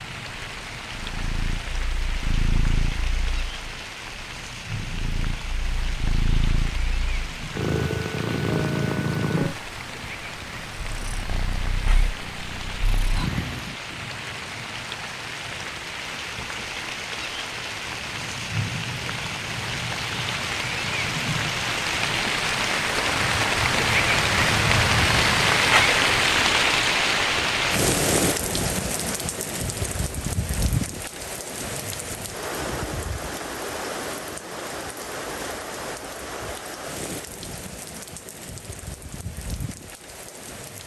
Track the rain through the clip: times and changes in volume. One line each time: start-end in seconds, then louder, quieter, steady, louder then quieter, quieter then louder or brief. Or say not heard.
0.0-40.8 louder then quieter.